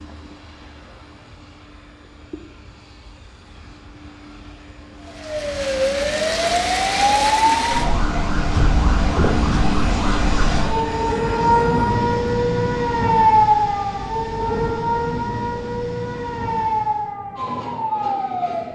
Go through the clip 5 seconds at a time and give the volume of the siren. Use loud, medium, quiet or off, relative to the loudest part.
off, loud, loud, medium.